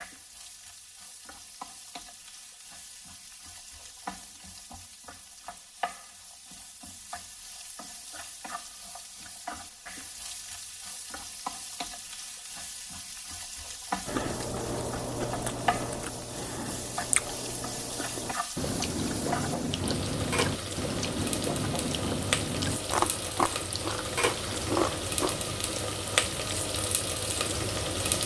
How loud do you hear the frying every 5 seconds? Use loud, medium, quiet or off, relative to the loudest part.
quiet, quiet, medium, medium, loud, loud.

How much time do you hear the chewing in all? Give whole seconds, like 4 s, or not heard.
11 s.